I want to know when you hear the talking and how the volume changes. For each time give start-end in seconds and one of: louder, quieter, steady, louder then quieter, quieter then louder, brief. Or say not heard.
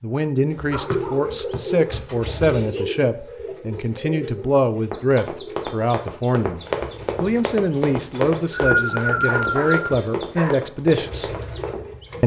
0.0-11.3 steady.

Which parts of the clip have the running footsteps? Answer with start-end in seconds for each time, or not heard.
4.9-11.9.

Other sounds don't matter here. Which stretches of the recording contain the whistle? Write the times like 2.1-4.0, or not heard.
0.9-1.6, 8.1-9.9.